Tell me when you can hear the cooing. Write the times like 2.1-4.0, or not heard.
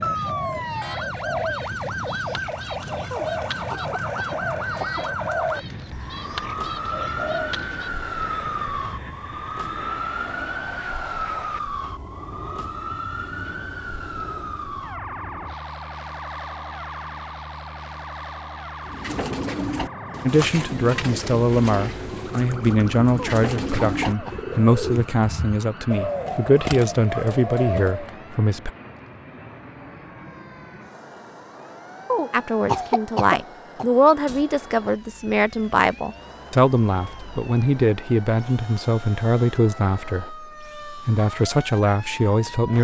0.0-7.9, 18.9-28.1.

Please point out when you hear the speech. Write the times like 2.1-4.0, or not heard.
20.2-28.7, 32.3-42.7.